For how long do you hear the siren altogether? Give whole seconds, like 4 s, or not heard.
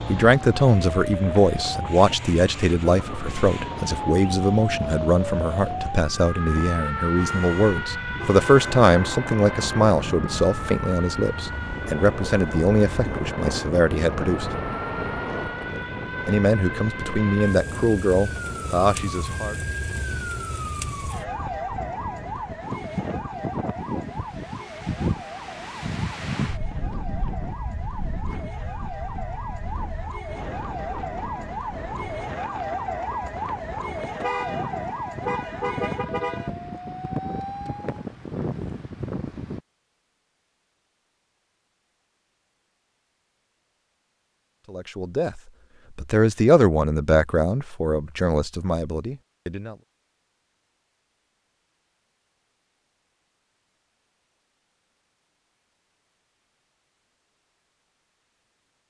38 s.